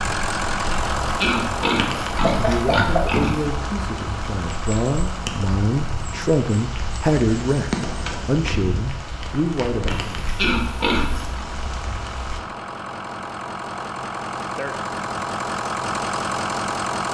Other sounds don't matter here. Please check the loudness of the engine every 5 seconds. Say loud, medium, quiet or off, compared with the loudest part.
loud, quiet, medium, loud.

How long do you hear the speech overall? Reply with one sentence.
You can hear the speech for 8 seconds altogether.